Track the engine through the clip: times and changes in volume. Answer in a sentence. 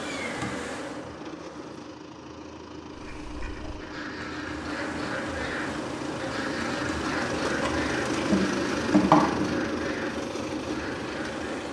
The engine can be heard from 0.0 to 11.6 s, getting louder.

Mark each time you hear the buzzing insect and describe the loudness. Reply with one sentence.
The buzzing insect can be heard briefly from 0.0 to 1.9 s; and from 4.5 to 11.6 s, getting louder then quieter.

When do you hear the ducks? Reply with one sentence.
The ducks can be heard from 2.9 to 11.5 s.